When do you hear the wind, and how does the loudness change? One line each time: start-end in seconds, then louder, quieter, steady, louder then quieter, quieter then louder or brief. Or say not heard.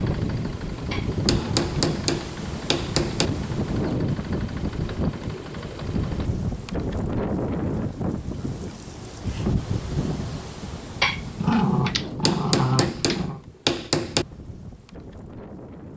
0.0-15.9 quieter.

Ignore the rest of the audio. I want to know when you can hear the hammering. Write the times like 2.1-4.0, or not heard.
1.2-3.3, 12.2-14.2.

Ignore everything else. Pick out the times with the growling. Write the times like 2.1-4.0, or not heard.
0.9-1.9, 11.0-13.4.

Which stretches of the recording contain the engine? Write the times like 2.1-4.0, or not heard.
0.0-6.3.